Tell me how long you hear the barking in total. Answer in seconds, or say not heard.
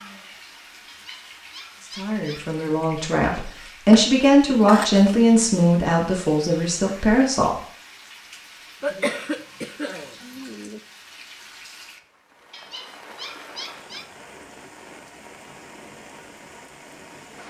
3 s.